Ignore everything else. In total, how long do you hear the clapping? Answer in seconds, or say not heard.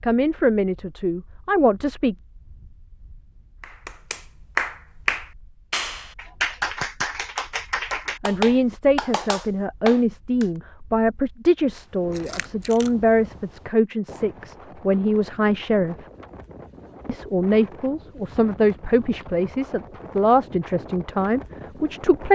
7 s.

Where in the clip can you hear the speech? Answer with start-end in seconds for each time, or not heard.
0.0-2.1, 8.2-15.9, 17.1-22.2.